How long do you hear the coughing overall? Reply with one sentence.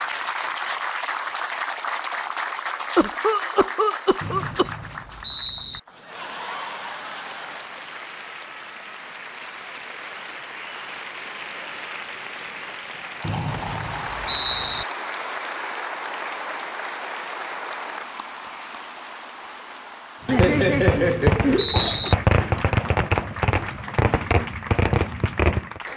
You can hear the coughing for 4 seconds altogether.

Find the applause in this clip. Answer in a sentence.
You can hear the applause from 0.0 to 25.9 s.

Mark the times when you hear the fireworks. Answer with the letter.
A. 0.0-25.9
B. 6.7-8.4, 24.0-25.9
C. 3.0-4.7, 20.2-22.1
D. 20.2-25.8
D.